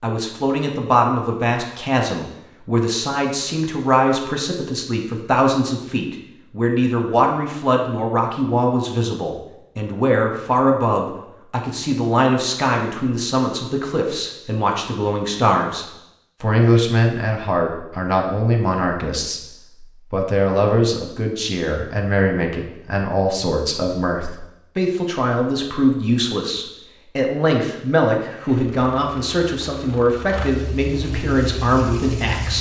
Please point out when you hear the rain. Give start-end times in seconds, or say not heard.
not heard.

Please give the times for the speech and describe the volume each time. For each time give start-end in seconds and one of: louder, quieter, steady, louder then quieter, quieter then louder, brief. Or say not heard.
0.0-32.5 steady.